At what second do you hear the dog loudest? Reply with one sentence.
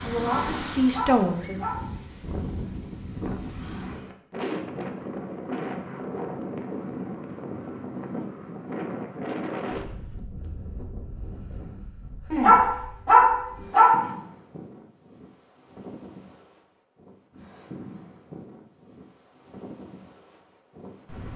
The volume of the dog peaks at 13 seconds.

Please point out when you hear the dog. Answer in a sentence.
You can hear the dog from 0.1 to 1.8 s and from 12.3 to 14.0 s.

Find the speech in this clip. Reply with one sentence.
The speech can be heard from 0.0 to 1.6 s.